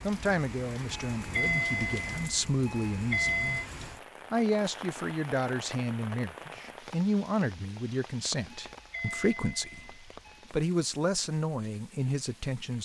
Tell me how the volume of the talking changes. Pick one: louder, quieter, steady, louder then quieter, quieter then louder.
steady.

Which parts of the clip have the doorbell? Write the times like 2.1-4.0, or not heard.
0.9-3.6, 8.6-10.4.